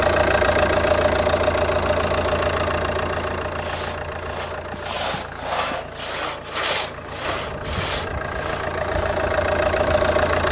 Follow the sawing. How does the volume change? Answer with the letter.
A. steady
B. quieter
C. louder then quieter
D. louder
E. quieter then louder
C.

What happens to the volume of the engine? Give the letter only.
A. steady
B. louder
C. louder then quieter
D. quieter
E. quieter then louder
E.